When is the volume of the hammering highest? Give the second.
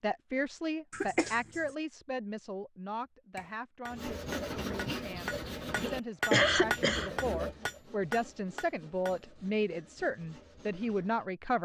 7 s.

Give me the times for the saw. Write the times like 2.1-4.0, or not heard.
3.9-11.2.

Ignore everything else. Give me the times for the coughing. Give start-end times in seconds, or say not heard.
0.9-1.6, 6.3-7.1.